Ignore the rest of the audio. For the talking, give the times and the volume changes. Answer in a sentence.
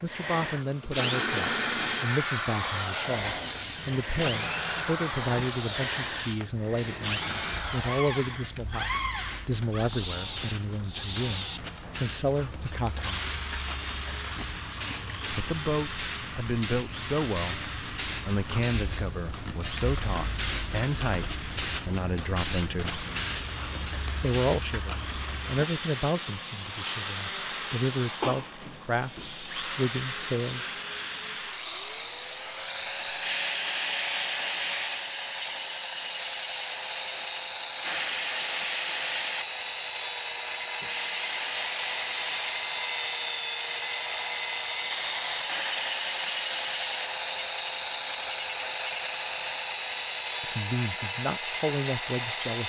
You can hear the talking from 0.0 to 13.3 s, at a steady volume; from 15.3 to 23.1 s, at a steady volume; from 24.2 to 30.8 s, at a steady volume; and briefly from 50.4 to 52.6 s.